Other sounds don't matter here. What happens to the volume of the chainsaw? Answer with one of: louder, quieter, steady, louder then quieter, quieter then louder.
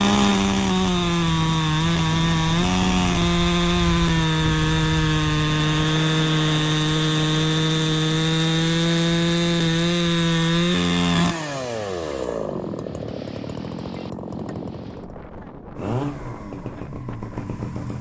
quieter.